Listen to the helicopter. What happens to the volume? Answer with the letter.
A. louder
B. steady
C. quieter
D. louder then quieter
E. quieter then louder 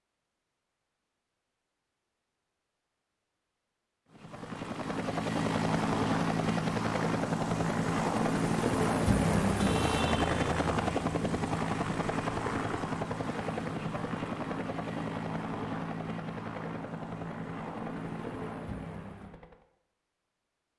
C.